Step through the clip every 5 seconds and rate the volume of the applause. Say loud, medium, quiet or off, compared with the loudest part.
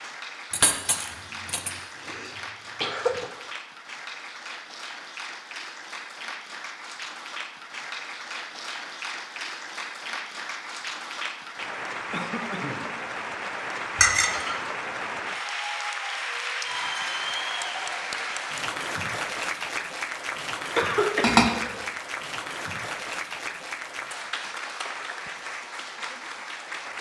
medium, medium, loud, loud, loud, medium.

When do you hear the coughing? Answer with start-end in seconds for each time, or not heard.
1.9-3.3, 12.1-12.9, 20.8-21.9.